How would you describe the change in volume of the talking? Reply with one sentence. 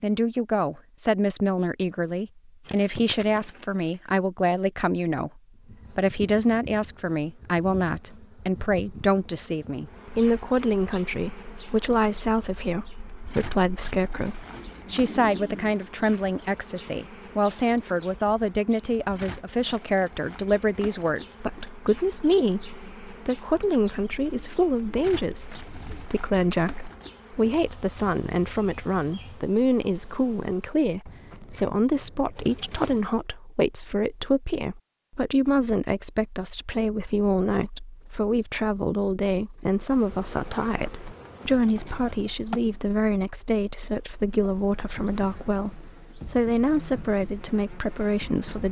The volume of the talking stays about the same.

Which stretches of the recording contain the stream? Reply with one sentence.
You can't hear the stream here.